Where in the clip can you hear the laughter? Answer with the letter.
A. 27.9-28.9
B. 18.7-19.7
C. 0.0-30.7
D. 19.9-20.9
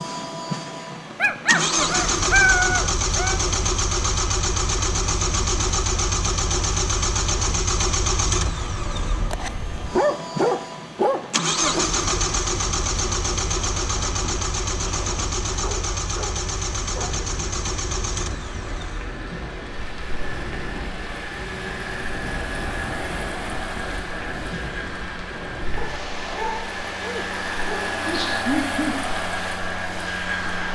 A.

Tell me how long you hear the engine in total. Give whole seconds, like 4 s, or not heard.
31 s.